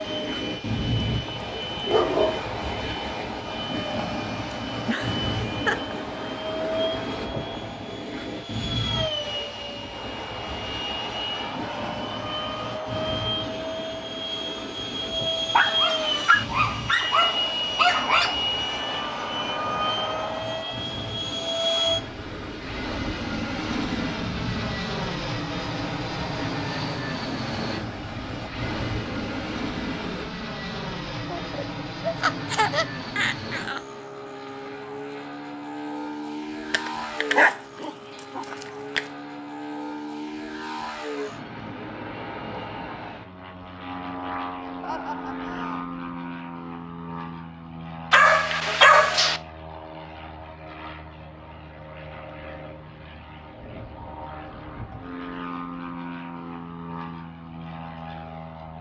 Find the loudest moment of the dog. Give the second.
49 s.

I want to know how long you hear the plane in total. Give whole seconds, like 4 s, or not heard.
59 s.